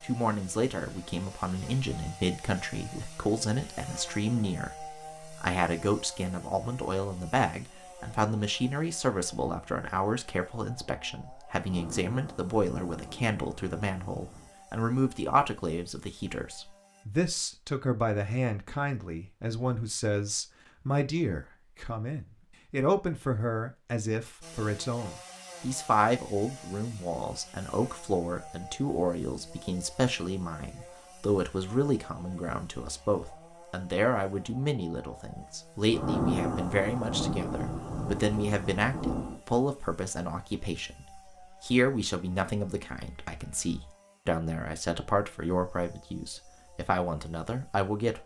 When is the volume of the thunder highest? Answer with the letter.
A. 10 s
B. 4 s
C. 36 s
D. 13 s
C.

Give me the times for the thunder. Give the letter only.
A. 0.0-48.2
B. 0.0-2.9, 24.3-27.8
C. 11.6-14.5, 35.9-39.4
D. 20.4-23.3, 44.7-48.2
C.